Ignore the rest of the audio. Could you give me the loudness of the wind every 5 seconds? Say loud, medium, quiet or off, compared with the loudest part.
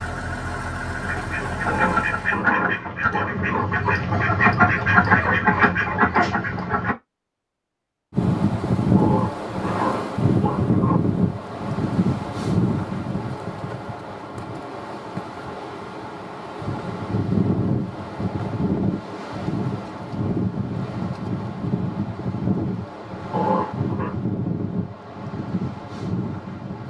off, loud, loud, medium, medium, medium.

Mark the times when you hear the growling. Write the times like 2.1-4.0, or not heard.
1.6-3.6, 8.9-11.0, 23.3-24.1.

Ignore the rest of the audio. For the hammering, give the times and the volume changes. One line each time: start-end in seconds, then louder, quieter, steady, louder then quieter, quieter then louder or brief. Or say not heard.
not heard.